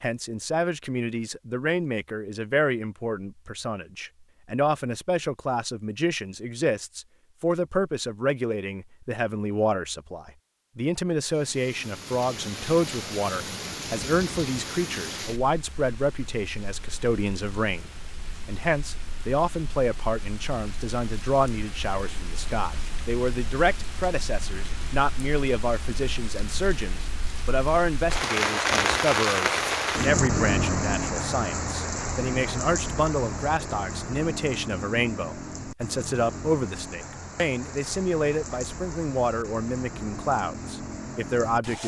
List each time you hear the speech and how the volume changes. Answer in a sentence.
The speech can be heard from 0.0 to 41.8 s, at a steady volume.